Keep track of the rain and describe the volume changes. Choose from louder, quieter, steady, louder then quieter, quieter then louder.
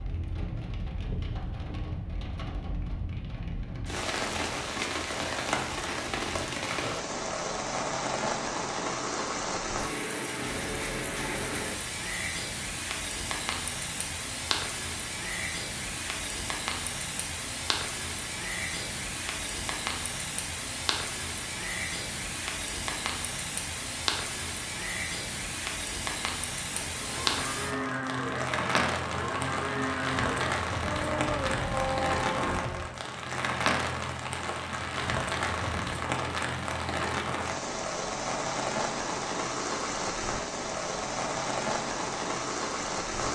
steady.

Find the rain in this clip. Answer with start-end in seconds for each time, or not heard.
0.0-43.2.